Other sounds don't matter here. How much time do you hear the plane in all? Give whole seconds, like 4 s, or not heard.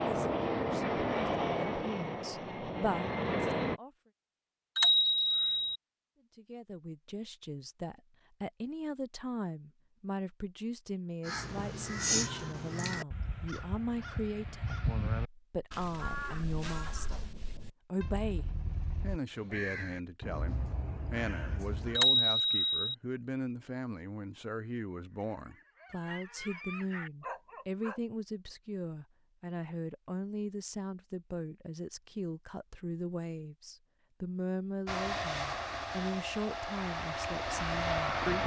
7 s.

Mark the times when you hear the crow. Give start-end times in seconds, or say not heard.
11.2-22.0.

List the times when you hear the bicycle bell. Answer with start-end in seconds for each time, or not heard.
4.8-5.8, 21.9-22.9.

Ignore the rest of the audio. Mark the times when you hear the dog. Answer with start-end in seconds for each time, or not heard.
25.1-28.0.